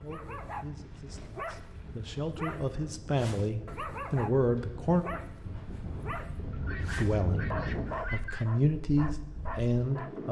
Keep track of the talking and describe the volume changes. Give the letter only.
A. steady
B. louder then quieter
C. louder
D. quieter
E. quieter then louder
C.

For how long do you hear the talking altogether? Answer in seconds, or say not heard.
8 s.